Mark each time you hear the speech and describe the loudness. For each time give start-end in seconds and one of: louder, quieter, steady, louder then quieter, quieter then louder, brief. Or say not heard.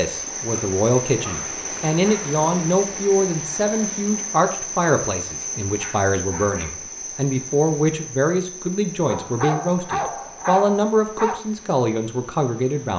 0.0-12.9 steady.